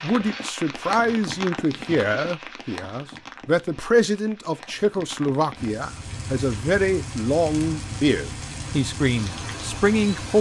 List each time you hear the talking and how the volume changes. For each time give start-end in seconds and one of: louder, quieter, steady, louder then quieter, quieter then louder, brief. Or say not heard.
0.0-10.3 steady.